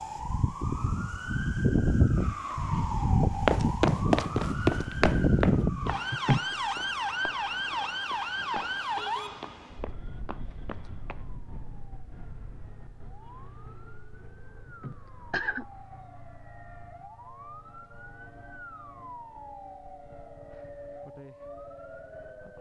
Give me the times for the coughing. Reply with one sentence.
The coughing can be heard from 6.1 to 6.5 s and from 14.7 to 15.7 s.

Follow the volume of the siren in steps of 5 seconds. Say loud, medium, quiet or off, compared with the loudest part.
loud, loud, quiet, quiet, quiet.